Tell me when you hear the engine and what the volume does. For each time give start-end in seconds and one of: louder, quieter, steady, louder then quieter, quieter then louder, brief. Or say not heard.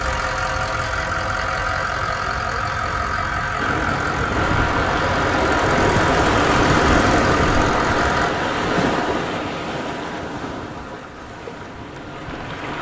0.0-8.3 steady.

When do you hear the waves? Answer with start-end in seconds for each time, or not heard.
3.6-12.7.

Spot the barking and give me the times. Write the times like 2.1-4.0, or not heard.
not heard.